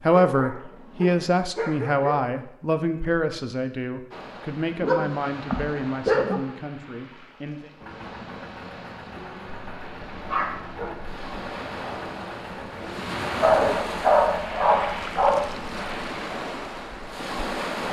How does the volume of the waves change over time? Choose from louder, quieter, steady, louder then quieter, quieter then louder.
louder.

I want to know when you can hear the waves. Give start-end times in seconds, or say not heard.
4.1-17.8.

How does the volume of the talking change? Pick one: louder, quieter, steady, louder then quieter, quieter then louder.
quieter.